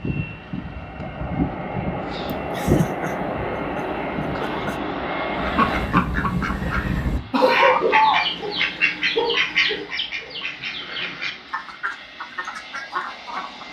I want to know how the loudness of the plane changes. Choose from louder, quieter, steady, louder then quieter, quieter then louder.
quieter.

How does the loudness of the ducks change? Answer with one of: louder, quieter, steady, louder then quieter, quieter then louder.
quieter.